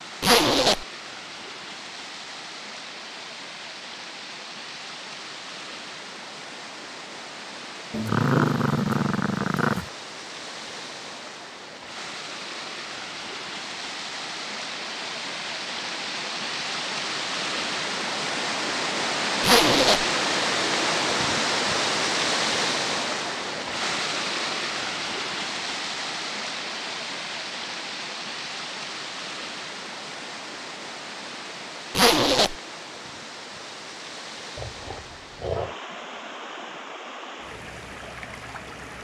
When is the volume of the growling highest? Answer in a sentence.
The loudest moment of the growling is at 8 seconds.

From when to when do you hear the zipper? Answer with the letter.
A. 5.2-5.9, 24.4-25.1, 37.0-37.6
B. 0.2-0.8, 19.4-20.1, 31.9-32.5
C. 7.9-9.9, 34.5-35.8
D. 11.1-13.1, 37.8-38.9
B.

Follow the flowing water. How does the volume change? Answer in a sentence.
The loudness of the flowing water goes up, then down.